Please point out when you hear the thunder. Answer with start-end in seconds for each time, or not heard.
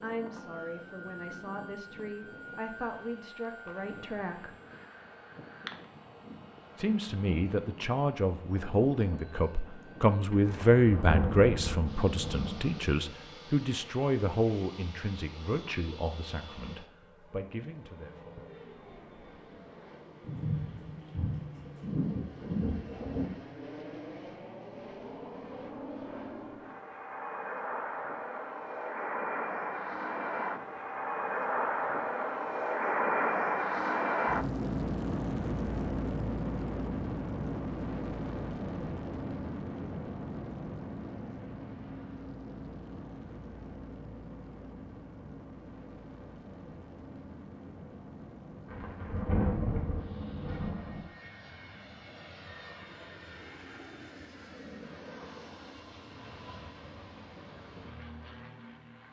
10.4-12.8, 20.2-23.3, 48.6-51.0.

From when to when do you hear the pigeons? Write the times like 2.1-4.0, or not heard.
not heard.